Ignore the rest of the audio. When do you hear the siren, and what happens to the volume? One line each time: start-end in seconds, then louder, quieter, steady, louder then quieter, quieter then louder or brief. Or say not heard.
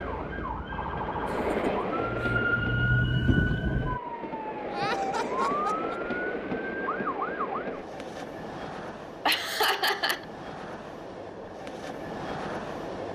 0.0-7.8 louder then quieter.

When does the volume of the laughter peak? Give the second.
10 s.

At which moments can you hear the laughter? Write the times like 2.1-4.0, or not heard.
1.2-2.5, 4.7-6.0, 9.2-10.2.